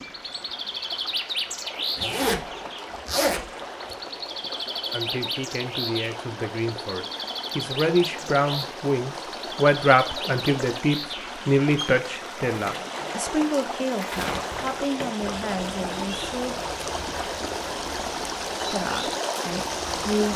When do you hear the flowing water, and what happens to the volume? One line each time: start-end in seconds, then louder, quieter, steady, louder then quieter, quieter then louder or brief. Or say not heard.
0.0-20.3 louder.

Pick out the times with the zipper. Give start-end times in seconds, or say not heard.
1.9-4.0.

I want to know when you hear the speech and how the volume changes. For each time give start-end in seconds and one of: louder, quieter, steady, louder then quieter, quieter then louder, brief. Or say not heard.
4.9-16.6 louder then quieter
18.6-20.3 brief.